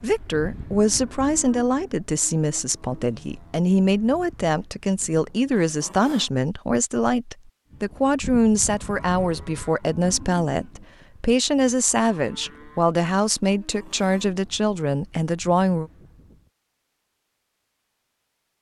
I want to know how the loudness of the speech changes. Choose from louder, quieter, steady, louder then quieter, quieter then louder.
steady.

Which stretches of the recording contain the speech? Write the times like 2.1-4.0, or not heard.
0.0-15.9.